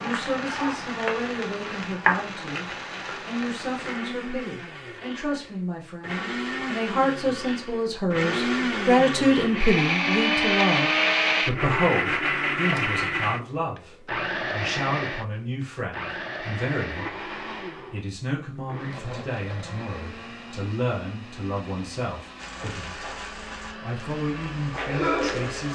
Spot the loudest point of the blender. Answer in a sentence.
The loudest moment of the blender is at 11 seconds.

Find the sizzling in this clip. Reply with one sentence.
You can hear the sizzling from 0.0 to 4.0 s and from 22.4 to 25.7 s.